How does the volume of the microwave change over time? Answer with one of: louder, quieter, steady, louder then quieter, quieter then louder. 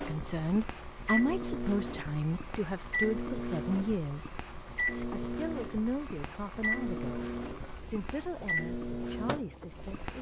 steady.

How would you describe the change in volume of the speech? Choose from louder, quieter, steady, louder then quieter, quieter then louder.
quieter.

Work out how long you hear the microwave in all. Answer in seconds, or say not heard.
10 s.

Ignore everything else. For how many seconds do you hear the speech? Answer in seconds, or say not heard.
10 s.